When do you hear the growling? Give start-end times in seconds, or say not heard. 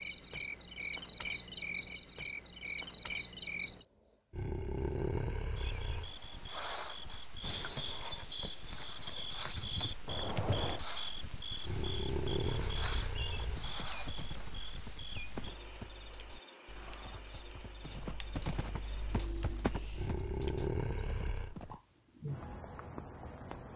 4.3-6.2, 11.6-13.6, 19.9-21.6.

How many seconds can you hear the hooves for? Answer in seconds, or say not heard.
12 s.